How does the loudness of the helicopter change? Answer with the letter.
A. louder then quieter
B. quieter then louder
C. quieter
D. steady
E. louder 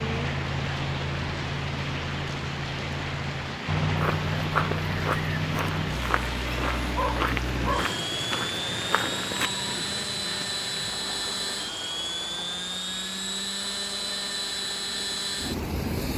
D.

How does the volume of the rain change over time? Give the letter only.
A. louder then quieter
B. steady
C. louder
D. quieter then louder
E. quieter
E.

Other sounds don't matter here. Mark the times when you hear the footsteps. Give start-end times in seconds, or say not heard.
4.0-9.5.